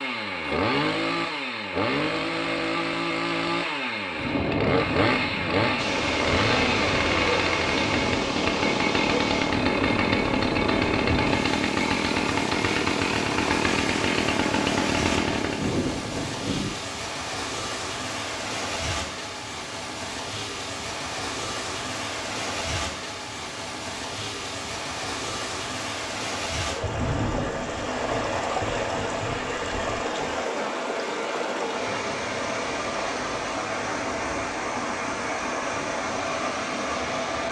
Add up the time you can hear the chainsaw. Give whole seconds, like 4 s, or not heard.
16 s.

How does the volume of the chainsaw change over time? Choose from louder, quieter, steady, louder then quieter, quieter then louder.
steady.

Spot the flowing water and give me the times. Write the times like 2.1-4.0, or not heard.
5.8-37.4.